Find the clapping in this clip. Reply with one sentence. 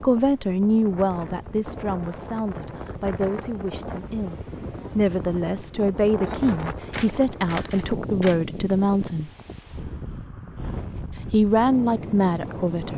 You can't hear the clapping here.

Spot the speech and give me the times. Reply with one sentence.
The speech can be heard from 0.0 to 9.3 s and from 11.3 to 12.9 s.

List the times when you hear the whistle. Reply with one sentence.
You can't hear the whistle here.